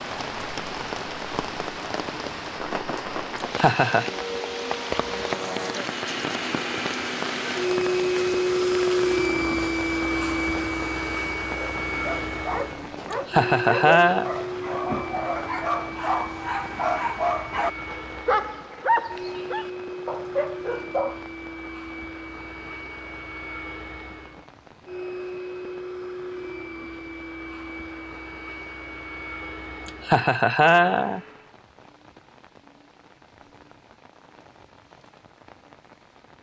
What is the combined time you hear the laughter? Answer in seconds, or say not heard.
3 s.